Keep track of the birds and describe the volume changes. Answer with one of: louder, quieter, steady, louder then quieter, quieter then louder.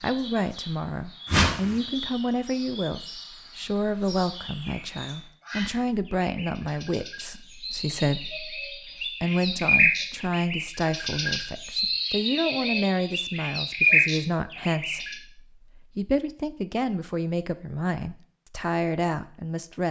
louder.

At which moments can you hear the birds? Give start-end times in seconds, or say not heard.
0.0-15.2.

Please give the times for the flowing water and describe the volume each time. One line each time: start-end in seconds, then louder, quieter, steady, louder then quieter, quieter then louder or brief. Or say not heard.
not heard.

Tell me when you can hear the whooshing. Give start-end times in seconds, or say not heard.
1.2-1.8.